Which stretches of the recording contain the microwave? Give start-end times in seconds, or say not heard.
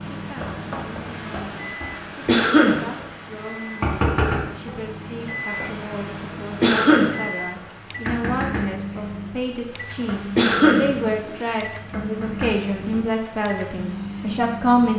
0.0-14.9.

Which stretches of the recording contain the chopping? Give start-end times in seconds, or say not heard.
not heard.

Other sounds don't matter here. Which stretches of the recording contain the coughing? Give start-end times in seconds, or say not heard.
2.2-2.9, 6.6-7.2, 10.3-10.9.